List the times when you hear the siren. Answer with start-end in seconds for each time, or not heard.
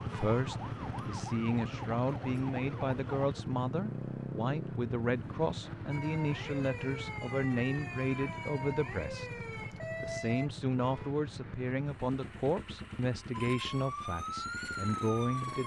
0.0-3.5, 5.9-10.5, 13.3-15.6.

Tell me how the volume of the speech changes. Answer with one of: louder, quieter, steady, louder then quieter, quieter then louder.
steady.